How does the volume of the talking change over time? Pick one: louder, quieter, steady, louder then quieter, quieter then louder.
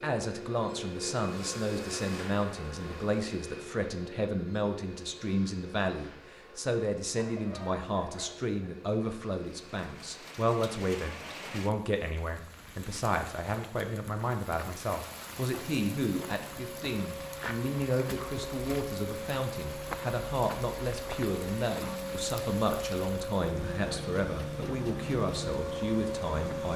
steady.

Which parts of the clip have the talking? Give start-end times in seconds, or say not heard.
0.0-26.7.